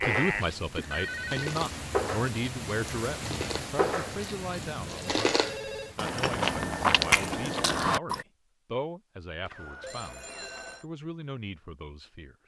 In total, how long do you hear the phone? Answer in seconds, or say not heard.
3 s.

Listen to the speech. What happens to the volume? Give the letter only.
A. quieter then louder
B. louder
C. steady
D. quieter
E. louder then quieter
D.